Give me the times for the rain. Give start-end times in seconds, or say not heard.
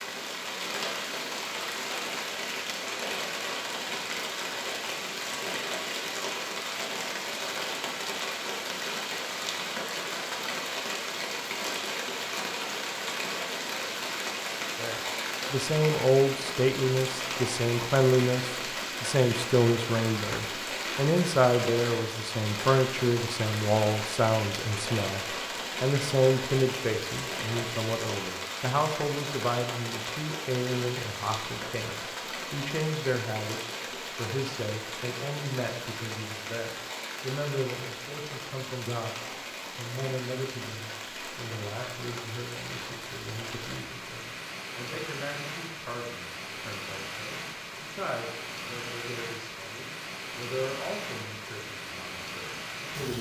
0.0-53.1.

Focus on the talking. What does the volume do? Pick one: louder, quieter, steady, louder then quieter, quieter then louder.
quieter.